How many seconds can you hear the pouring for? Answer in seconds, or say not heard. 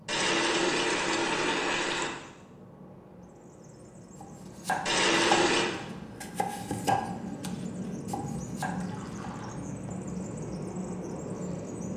4 s.